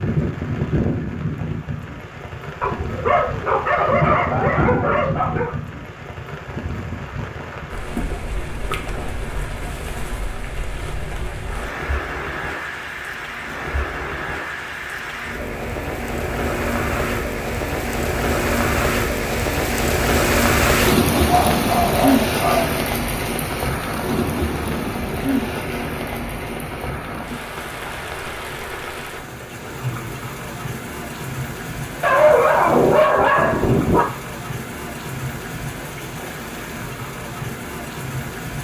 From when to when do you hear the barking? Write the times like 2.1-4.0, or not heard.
2.6-5.5, 21.1-22.8, 32.0-34.0.